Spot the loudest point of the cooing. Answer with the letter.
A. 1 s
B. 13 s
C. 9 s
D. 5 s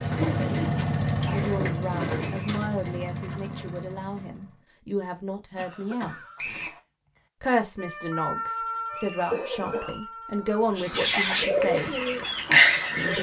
B.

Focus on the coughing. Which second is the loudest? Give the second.
9 s.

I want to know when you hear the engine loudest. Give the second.
1 s.